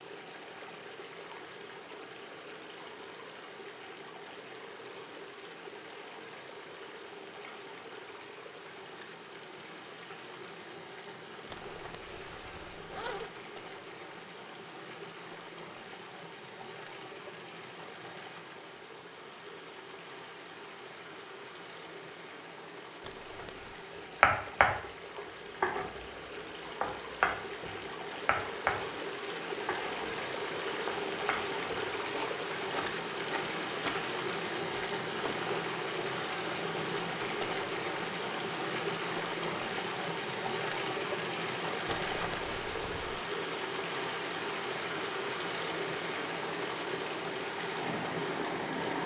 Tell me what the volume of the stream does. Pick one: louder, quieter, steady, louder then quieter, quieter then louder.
louder.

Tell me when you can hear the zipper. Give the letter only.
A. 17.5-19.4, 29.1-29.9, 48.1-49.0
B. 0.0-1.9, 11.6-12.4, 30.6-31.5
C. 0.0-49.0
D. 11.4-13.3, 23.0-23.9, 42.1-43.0
D.